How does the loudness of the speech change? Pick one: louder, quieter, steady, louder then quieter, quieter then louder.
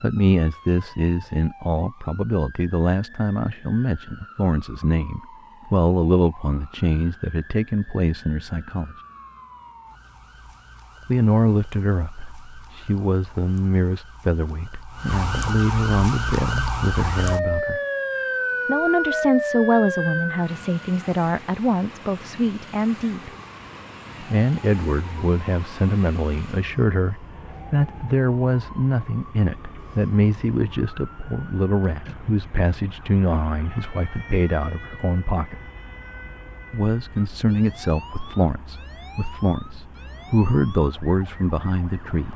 steady.